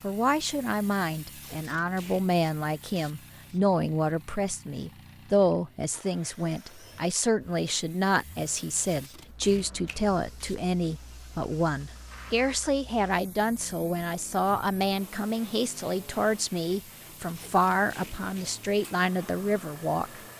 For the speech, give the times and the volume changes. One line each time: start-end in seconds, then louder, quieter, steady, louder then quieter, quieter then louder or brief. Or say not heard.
0.0-20.2 steady.